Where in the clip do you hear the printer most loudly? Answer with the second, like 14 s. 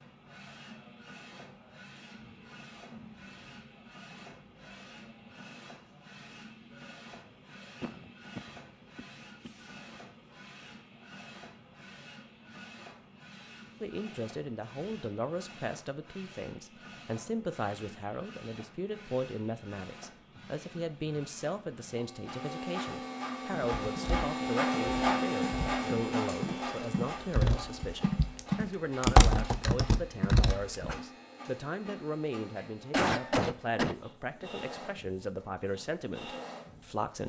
25 s.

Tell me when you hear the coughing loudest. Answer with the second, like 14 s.
33 s.